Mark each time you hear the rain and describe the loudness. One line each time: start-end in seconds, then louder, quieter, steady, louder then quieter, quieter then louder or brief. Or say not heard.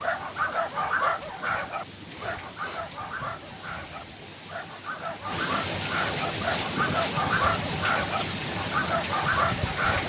0.0-10.0 louder.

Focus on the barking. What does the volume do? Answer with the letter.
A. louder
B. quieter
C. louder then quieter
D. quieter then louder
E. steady
D.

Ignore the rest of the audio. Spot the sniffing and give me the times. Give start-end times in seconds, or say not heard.
2.1-2.9, 6.5-7.5.